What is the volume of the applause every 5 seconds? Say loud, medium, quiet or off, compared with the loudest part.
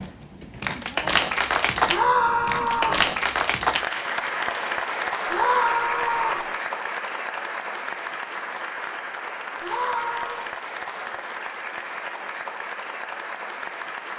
loud, medium, medium.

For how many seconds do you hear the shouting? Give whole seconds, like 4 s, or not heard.
3 s.